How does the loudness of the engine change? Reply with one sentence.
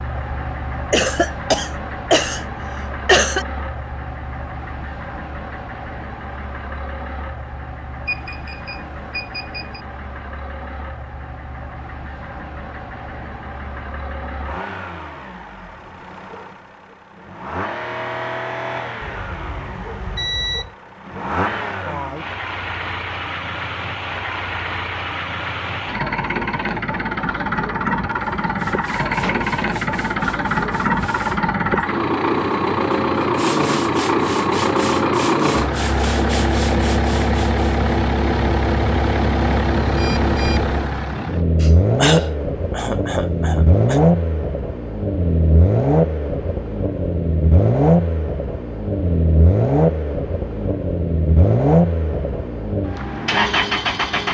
The loudness of the engine goes up.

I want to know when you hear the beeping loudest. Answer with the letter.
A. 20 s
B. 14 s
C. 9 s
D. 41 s
A.